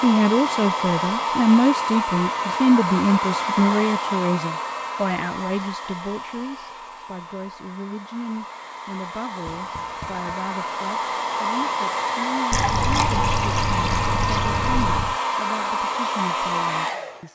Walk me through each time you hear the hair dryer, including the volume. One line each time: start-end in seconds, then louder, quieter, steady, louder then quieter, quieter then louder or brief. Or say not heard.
0.0-17.2 quieter then louder.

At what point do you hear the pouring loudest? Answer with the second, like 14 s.
13 s.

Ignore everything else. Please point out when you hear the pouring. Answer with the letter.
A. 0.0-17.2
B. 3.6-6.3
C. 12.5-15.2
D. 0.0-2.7
C.